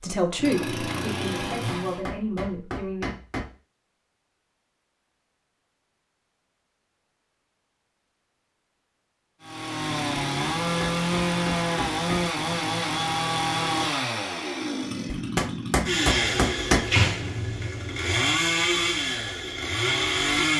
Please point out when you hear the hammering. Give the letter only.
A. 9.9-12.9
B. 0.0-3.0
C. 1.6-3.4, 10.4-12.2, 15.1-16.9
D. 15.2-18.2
C.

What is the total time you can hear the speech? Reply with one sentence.
You can hear the speech for 3 seconds altogether.